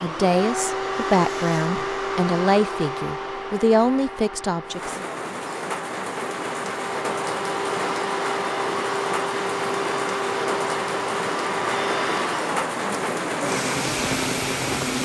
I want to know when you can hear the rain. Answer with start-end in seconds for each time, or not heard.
4.7-14.9.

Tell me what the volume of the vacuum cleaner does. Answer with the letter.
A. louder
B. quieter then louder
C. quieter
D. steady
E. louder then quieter
B.